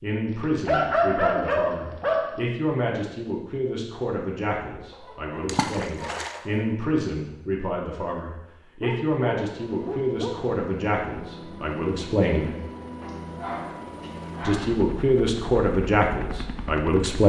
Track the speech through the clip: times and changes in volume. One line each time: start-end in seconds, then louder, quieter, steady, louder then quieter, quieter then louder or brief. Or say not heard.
0.0-12.6 steady
14.4-17.2 brief.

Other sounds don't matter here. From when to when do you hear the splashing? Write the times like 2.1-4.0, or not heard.
5.5-6.5.